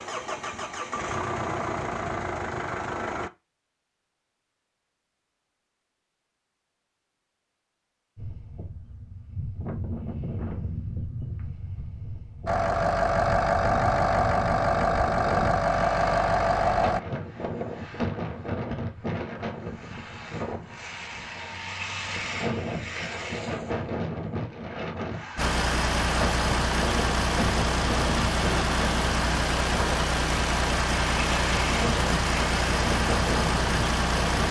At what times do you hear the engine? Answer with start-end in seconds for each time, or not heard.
0.0-3.3, 12.4-17.0, 25.4-34.4.